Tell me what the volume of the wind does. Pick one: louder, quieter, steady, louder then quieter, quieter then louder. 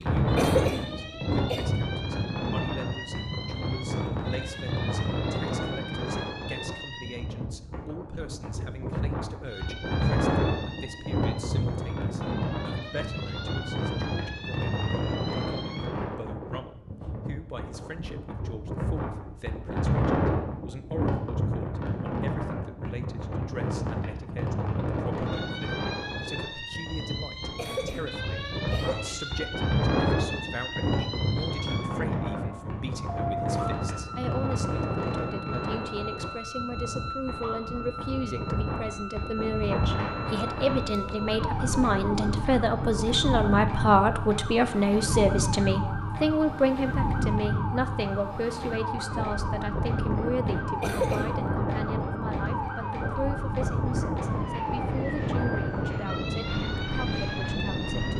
steady.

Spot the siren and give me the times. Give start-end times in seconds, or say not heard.
0.0-7.2, 9.4-15.8, 25.2-58.1.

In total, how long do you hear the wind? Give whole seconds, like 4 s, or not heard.
58 s.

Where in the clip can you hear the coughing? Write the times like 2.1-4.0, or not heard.
0.3-1.7, 27.6-29.2, 50.8-51.4.